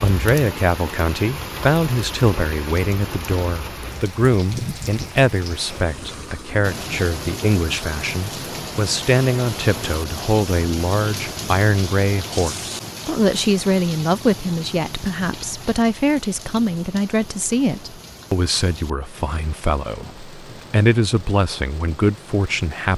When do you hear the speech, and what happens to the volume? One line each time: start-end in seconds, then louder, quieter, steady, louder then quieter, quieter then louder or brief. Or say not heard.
0.0-22.9 steady.